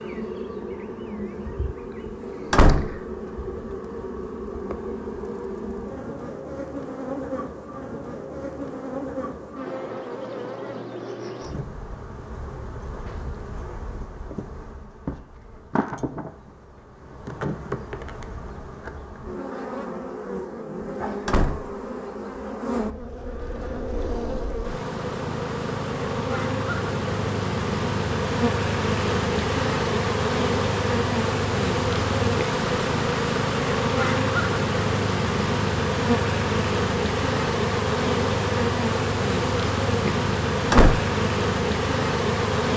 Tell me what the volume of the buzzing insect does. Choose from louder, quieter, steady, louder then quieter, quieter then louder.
louder.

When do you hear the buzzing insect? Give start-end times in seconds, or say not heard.
0.0-42.7.